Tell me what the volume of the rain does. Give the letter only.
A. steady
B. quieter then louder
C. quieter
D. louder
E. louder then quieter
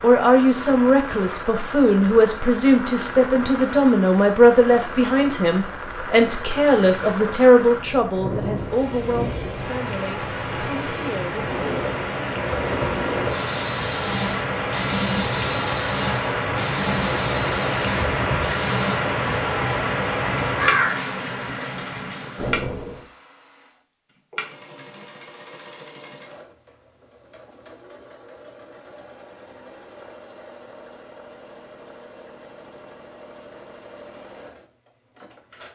D.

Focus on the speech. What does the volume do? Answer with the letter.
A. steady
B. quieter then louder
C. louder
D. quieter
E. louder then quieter
D.